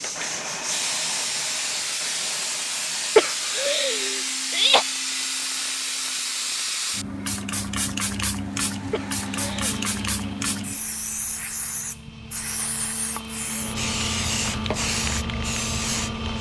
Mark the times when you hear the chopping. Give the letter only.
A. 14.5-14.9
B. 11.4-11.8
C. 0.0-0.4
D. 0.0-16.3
A.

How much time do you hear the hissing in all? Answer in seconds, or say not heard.
16 s.